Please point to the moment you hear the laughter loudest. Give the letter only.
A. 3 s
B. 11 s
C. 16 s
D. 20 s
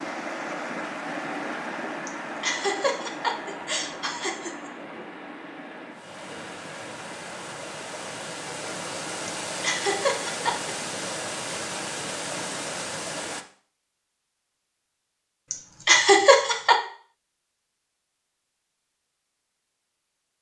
C.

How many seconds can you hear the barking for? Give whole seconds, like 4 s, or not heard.
not heard.